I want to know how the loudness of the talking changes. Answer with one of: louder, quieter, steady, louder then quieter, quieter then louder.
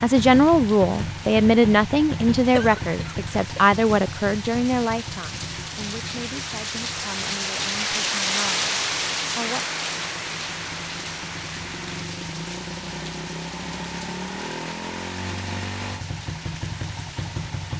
quieter.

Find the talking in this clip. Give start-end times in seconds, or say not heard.
0.0-9.7.